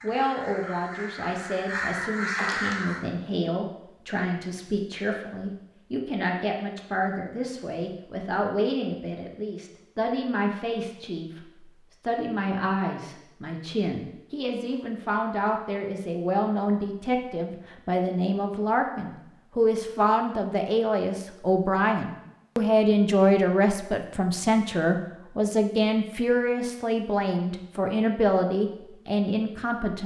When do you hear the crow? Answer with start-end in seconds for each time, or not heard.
0.0-3.0.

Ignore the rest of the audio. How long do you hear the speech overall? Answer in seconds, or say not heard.
30 s.